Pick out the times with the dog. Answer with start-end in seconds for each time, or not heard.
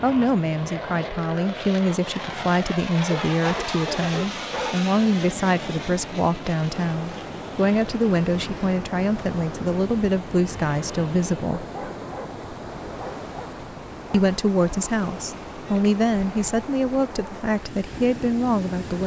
3.0-4.8, 11.6-12.3, 13.0-14.3.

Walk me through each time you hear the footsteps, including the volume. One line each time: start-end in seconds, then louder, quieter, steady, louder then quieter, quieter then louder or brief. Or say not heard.
not heard.